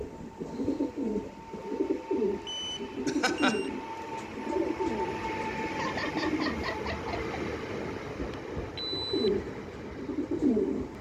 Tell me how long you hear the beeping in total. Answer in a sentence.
You can hear the beeping for 2 seconds altogether.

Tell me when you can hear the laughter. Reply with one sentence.
The laughter can be heard from 3.0 to 3.6 s and from 5.7 to 7.3 s.